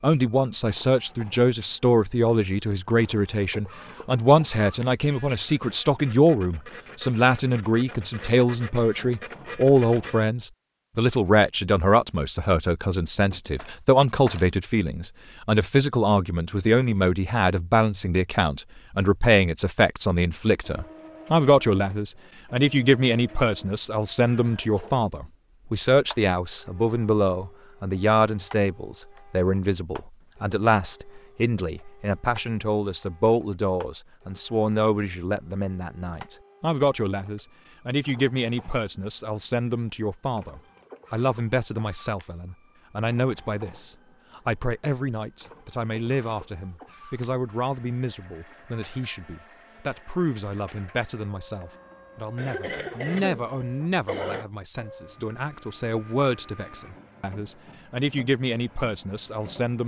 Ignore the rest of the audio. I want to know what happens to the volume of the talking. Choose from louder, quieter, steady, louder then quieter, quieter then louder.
quieter.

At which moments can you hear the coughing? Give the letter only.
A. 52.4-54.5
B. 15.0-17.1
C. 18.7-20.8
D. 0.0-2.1
A.